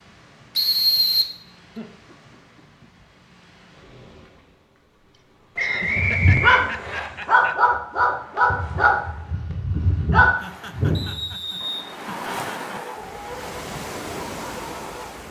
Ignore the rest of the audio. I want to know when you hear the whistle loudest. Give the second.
1 s.